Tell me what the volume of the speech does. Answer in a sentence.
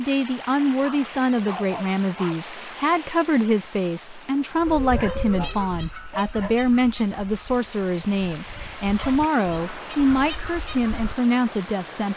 The loudness of the speech stays about the same.